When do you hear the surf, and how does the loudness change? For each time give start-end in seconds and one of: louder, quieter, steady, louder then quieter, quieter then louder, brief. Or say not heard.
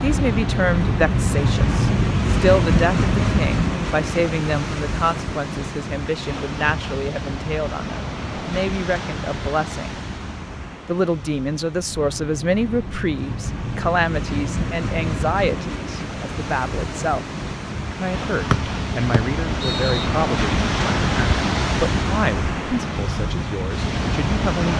0.0-24.7 quieter then louder.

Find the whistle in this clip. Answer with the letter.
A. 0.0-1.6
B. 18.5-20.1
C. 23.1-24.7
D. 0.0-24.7
B.